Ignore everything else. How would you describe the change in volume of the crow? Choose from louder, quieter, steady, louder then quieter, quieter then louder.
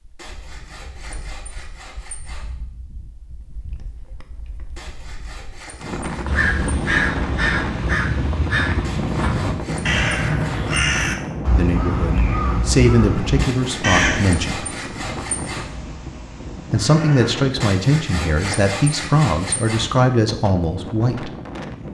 quieter.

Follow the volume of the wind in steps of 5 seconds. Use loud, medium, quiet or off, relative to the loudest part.
quiet, loud, loud, medium, medium.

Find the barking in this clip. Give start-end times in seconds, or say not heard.
not heard.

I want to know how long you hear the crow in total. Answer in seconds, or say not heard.
11 s.